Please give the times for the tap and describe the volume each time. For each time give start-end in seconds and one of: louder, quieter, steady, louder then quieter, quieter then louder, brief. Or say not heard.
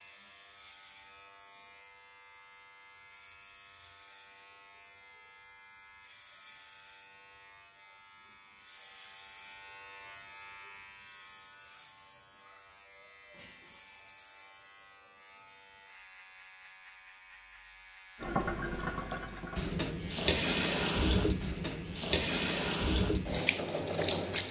18.2-24.4 louder.